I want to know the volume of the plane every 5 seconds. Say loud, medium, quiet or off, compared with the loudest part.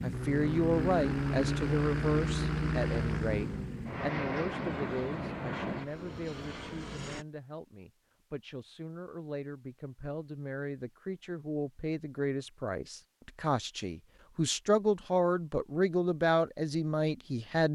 loud, medium, off, off.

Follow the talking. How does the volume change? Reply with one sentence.
The loudness of the talking goes down, then up.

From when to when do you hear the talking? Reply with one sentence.
You can hear the talking from 0.0 to 17.7 s.